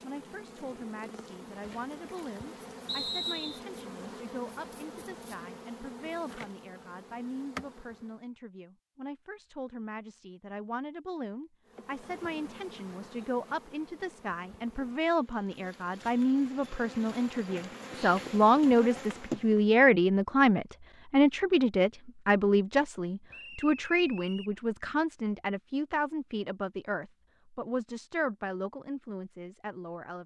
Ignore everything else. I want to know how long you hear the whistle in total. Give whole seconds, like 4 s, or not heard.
2 s.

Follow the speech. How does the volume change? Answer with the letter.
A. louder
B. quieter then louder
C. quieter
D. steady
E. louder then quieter
E.